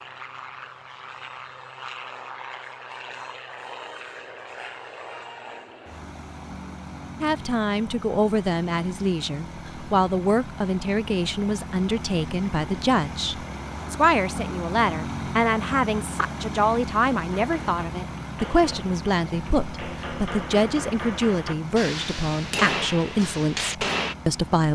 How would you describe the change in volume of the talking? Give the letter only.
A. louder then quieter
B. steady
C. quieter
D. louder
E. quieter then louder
B.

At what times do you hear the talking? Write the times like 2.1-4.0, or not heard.
7.2-24.7.